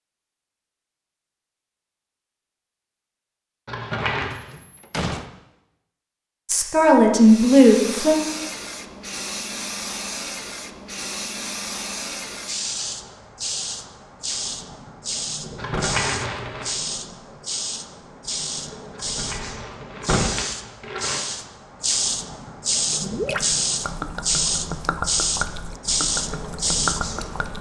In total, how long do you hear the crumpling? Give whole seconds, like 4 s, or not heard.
4 s.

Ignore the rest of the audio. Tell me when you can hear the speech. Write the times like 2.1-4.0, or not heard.
6.5-8.2.